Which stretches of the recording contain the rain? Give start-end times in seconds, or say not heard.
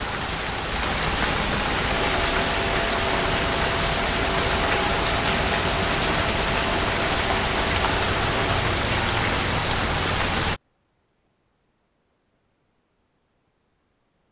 0.0-10.6.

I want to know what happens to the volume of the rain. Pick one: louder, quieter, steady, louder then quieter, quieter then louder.
steady.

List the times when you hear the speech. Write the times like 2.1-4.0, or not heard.
not heard.